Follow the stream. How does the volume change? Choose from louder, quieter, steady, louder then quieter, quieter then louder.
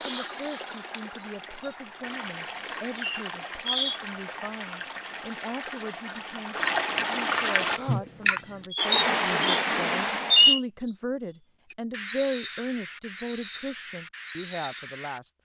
louder.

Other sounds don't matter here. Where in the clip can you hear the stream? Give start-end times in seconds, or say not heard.
0.0-10.6.